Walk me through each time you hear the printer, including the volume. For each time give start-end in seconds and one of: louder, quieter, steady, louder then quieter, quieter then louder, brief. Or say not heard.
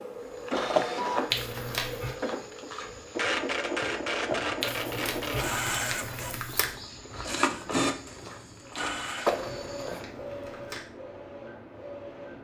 0.0-12.3 quieter.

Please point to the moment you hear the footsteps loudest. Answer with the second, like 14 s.
9 s.